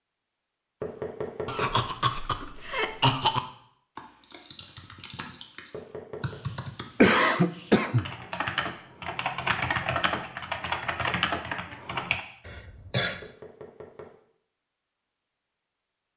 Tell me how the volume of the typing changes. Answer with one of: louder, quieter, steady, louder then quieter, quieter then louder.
louder.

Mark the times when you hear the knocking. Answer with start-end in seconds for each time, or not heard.
0.8-1.8, 5.7-6.4, 13.2-14.2.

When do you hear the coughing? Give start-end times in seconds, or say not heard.
1.4-3.4, 7.0-8.1, 12.4-13.2.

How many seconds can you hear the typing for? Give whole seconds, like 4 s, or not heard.
8 s.